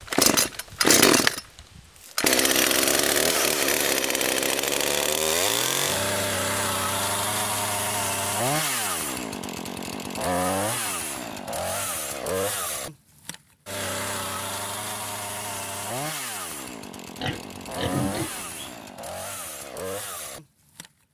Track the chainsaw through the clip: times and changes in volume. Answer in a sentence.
The chainsaw can be heard from 0.0 to 21.1 s, getting quieter.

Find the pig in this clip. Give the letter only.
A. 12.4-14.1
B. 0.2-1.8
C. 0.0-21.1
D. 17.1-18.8
D.